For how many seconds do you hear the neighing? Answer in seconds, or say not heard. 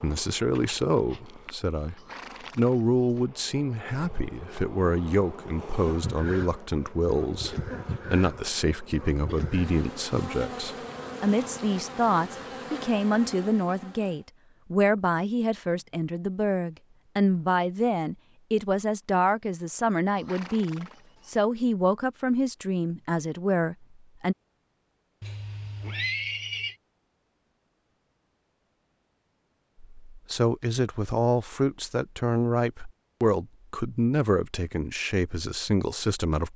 4 s.